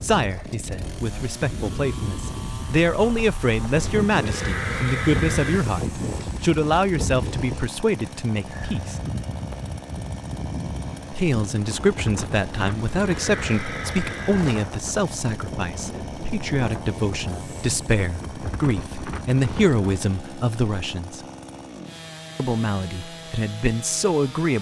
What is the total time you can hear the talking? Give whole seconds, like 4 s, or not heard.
21 s.